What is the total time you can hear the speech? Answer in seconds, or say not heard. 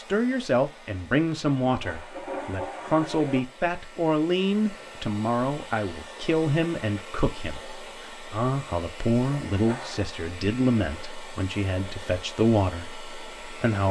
14 s.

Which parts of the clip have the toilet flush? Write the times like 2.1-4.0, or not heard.
1.6-3.4, 9.2-10.1.